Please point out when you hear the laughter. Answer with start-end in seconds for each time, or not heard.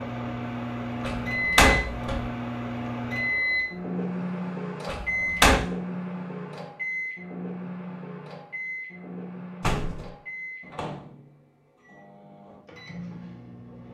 not heard.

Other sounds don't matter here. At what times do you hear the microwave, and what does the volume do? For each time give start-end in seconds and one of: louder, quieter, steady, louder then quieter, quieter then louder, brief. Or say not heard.
0.0-13.8 quieter.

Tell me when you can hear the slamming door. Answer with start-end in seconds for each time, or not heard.
1.0-2.3, 4.8-5.6, 9.6-10.1.